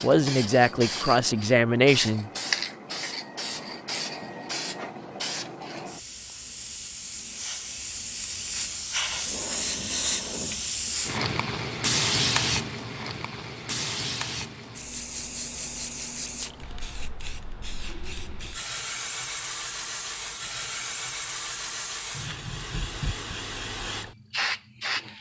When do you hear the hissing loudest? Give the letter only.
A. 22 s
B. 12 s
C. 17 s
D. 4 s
B.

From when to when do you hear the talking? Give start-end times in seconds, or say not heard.
0.0-2.3.